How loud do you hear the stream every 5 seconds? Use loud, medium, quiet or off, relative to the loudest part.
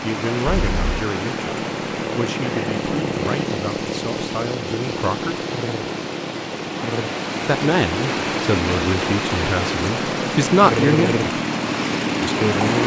medium, loud, loud.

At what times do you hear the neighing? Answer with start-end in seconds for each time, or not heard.
0.5-1.1.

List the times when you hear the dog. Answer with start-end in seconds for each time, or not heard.
not heard.